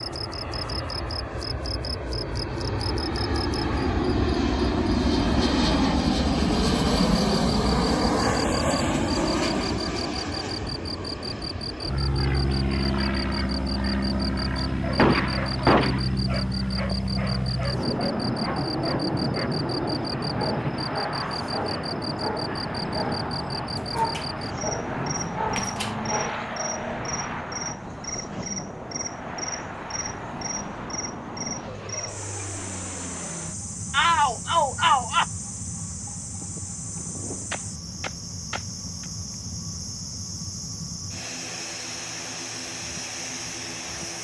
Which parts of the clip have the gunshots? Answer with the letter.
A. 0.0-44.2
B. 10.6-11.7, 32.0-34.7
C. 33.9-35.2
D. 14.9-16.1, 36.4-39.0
D.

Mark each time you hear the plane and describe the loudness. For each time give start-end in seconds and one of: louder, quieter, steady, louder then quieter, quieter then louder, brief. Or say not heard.
0.0-44.2 quieter.